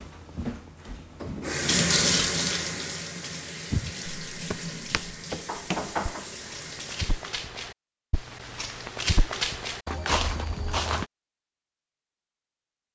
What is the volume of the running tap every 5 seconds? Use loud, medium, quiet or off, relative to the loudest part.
loud, medium, off.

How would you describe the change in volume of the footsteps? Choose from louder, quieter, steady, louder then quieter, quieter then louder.
louder.